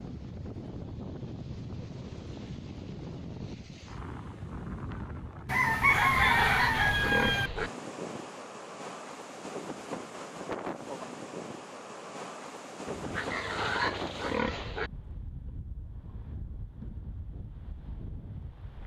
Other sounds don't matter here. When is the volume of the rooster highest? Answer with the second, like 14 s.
6 s.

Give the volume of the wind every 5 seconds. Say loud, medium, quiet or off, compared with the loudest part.
loud, loud, loud, medium.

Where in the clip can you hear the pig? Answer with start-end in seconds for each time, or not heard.
5.7-7.7, 12.8-14.9.